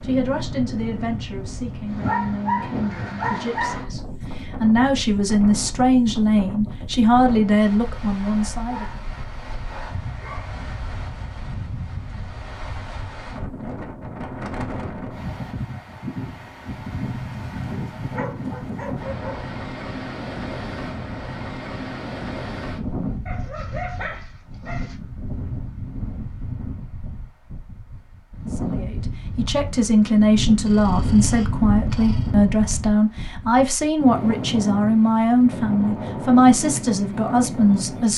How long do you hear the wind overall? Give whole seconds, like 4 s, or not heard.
38 s.